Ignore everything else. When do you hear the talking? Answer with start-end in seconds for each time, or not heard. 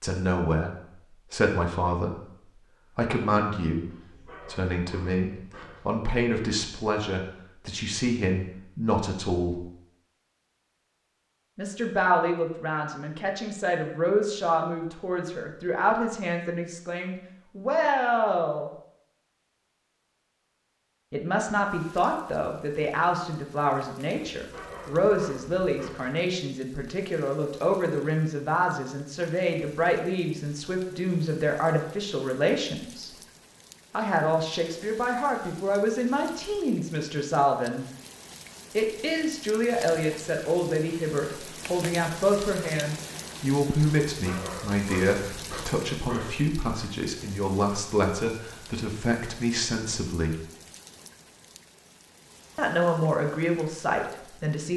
0.0-9.7, 11.6-18.7, 21.1-33.1, 33.9-37.9, 38.7-50.4, 52.5-54.7.